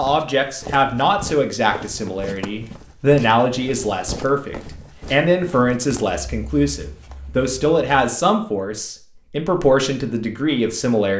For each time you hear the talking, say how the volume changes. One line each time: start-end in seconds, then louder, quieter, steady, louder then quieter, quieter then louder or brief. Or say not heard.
0.0-11.1 steady.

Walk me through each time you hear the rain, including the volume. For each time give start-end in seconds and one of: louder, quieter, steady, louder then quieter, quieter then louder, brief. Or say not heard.
not heard.